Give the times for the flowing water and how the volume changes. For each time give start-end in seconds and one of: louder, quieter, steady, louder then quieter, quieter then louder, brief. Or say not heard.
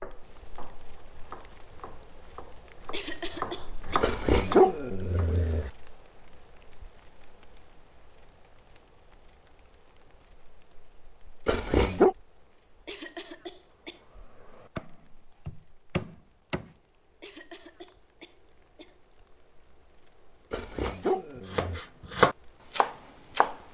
not heard.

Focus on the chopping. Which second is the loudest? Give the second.
22 s.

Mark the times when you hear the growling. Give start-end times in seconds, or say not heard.
4.0-5.7, 11.4-12.2, 20.5-21.8.